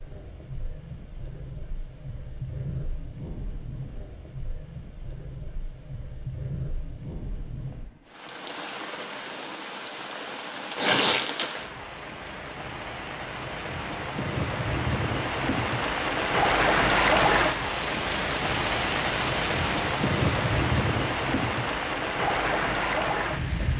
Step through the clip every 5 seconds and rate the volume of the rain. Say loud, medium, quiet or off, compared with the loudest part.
quiet, quiet, medium, loud, loud.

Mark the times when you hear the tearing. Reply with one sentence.
You can hear the tearing from 10.8 to 11.5 s.